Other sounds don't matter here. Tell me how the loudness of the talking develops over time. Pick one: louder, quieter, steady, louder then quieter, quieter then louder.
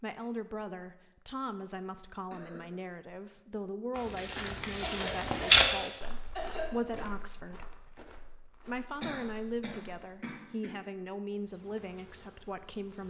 steady.